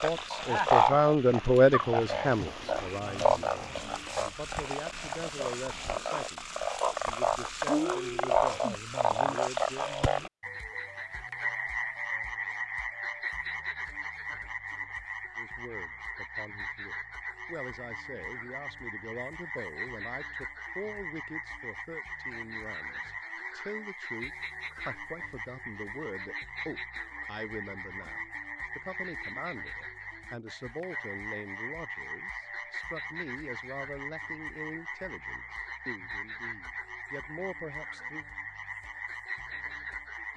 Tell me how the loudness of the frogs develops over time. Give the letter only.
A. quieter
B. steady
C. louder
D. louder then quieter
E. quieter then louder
A.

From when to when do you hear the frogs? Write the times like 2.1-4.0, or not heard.
0.0-40.3.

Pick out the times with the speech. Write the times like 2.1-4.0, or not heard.
0.0-9.9, 15.3-38.2.